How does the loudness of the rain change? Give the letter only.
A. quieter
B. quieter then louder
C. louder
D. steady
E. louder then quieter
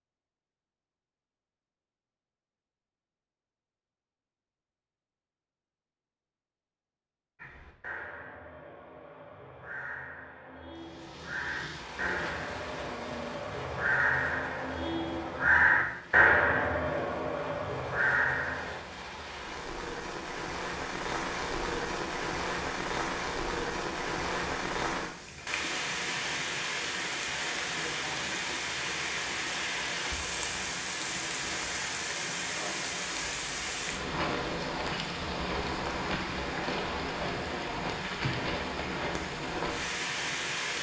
C.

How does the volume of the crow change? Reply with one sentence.
The volume of the crow goes up.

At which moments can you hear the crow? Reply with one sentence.
The crow can be heard from 7.3 to 18.8 s.